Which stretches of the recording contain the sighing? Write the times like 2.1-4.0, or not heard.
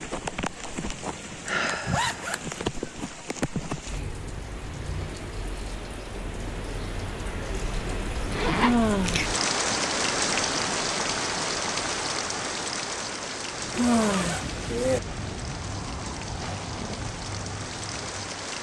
1.4-2.4, 8.6-9.2, 13.8-14.4.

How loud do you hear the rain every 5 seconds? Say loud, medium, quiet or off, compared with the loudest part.
medium, loud, loud, medium.